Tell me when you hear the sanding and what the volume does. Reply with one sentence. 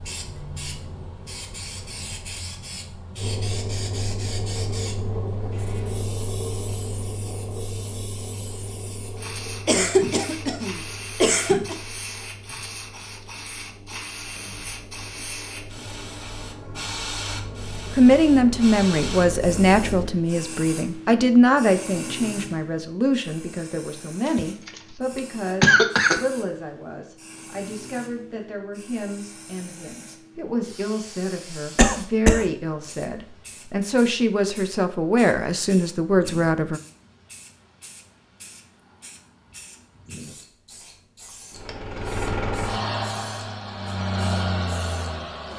The sanding can't be heard in this clip.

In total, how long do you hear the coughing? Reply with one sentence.
You can hear the coughing for 4 seconds altogether.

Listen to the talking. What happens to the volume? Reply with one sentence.
The volume of the talking goes down, then up.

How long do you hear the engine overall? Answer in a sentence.
The engine can be heard for 21 seconds in total.